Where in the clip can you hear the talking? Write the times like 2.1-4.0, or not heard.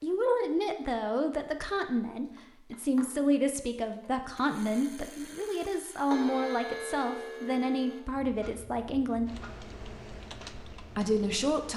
0.0-9.3, 10.8-11.7.